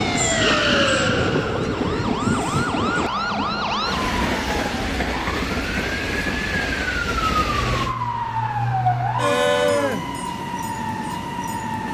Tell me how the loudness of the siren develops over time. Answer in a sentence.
The loudness of the siren goes down, then up.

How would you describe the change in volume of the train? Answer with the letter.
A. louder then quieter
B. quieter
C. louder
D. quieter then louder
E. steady
B.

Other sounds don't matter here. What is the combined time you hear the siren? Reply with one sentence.
The siren can be heard for 12 seconds in total.